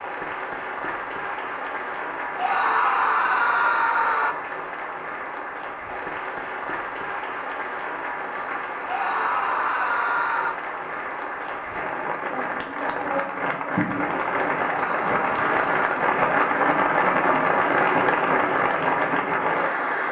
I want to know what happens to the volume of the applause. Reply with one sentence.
The loudness of the applause goes up.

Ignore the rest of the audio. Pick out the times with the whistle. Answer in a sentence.
You can't hear the whistle here.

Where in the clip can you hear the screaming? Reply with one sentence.
You can hear the screaming from 2.4 to 4.3 s, from 8.8 to 10.6 s and from 14.7 to 15.9 s.